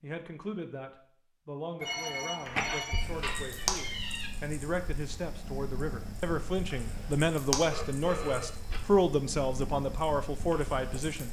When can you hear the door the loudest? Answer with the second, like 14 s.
3 s.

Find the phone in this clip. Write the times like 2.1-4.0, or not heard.
1.8-3.1, 7.7-8.8.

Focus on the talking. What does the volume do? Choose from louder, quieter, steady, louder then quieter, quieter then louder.
louder.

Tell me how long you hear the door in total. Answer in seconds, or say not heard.
2 s.